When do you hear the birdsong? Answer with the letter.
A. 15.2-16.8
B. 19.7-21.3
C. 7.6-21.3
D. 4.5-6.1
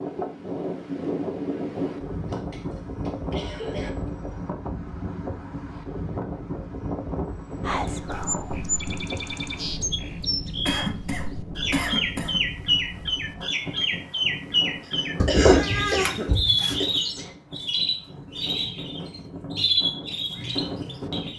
C.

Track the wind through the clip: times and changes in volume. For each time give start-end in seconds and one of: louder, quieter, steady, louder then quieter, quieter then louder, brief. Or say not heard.
0.0-21.3 quieter.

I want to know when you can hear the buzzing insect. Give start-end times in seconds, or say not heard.
not heard.